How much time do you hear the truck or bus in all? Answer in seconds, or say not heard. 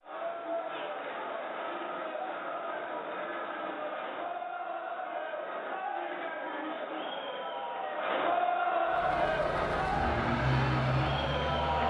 3 s.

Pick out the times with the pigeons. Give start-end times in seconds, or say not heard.
not heard.